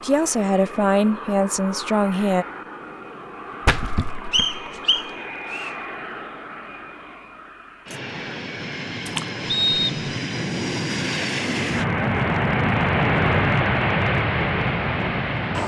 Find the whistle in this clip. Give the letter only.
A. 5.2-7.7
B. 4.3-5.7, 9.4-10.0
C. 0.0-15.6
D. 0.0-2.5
B.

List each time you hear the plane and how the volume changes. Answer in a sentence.
You can hear the plane from 0.0 to 15.6 s, getting louder.